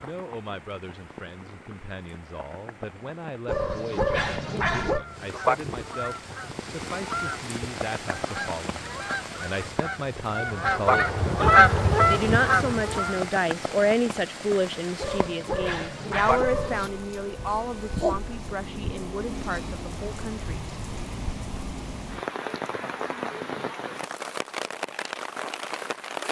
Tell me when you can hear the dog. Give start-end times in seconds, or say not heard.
3.5-5.0, 14.9-16.9.